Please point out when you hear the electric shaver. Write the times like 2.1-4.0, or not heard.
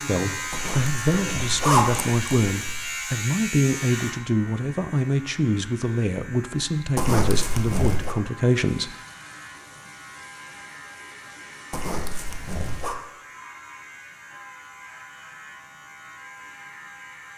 0.0-17.3.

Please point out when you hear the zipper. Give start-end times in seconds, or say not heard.
0.5-2.8, 7.0-8.2, 11.7-12.9.